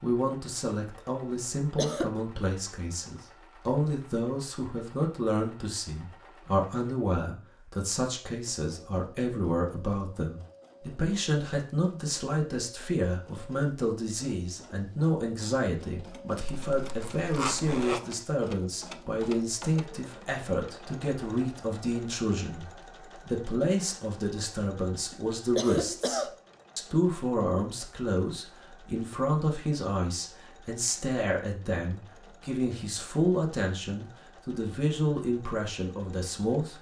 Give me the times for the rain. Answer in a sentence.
The rain can't be heard in this clip.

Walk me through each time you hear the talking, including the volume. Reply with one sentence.
You can hear the talking from 0.0 to 36.7 s, at a steady volume.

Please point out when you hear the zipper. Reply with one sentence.
The zipper can be heard from 16.5 to 18.0 s.